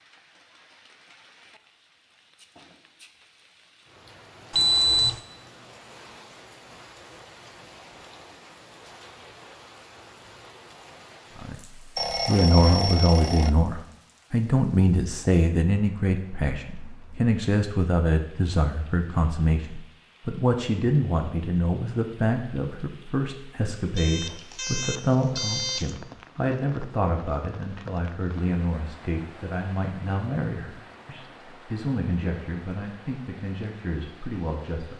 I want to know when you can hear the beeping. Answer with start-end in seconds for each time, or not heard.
4.5-5.2, 11.9-13.5, 23.9-25.9.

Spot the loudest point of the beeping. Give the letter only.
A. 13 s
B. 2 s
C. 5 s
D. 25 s
C.